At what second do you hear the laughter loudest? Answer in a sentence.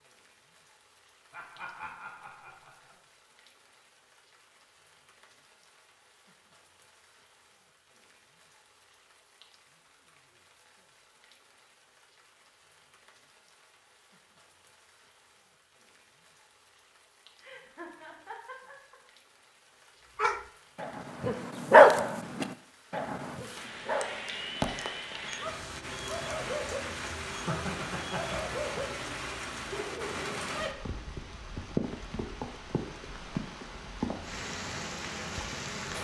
The volume of the laughter peaks at 28 seconds.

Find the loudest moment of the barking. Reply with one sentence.
The volume of the barking peaks at 22 seconds.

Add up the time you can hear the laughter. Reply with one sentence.
The laughter can be heard for 5 seconds in total.